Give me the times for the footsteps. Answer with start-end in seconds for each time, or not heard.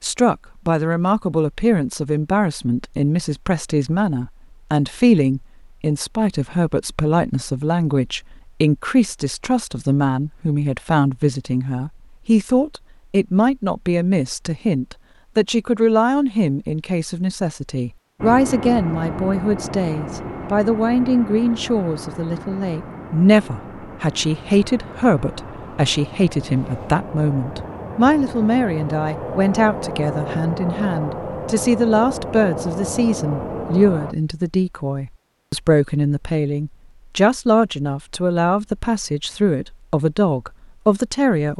not heard.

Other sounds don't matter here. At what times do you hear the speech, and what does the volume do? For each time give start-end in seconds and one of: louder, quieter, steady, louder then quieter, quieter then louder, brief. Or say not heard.
0.0-41.5 steady.